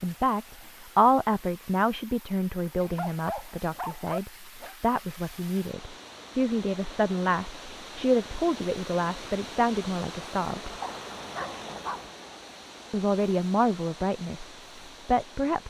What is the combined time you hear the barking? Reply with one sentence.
The barking can be heard for 3 seconds in total.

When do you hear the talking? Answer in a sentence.
You can hear the talking from 0.0 to 10.8 s and from 12.9 to 15.6 s.